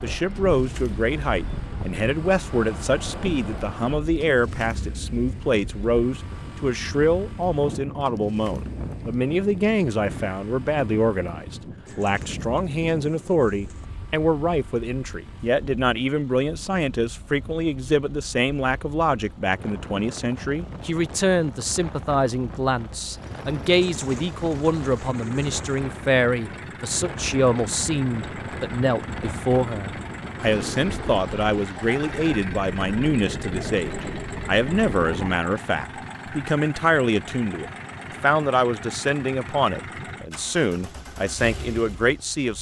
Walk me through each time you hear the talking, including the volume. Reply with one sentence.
You can hear the talking from 0.0 to 42.5 s, at a steady volume.